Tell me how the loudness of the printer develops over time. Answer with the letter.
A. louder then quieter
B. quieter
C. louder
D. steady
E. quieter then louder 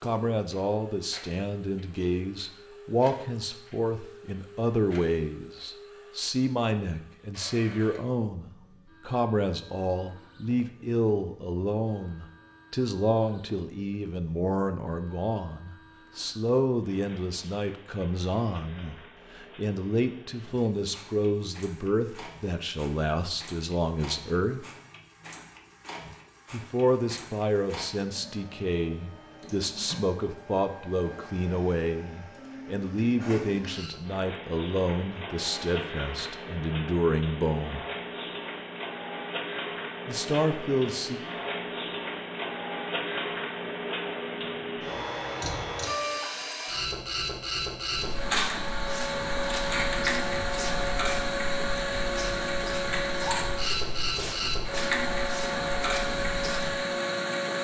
C.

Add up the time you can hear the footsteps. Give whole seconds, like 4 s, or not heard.
9 s.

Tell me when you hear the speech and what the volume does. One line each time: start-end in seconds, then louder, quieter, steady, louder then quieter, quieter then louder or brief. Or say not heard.
0.0-24.6 steady
26.5-37.9 steady
40.0-41.2 brief.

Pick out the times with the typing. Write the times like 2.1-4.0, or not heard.
not heard.